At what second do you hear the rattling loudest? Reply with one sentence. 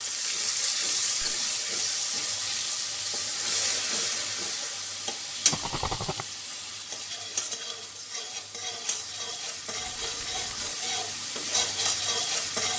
The volume of the rattling peaks at 6 seconds.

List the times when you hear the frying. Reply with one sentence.
The frying can be heard from 0.0 to 12.7 s.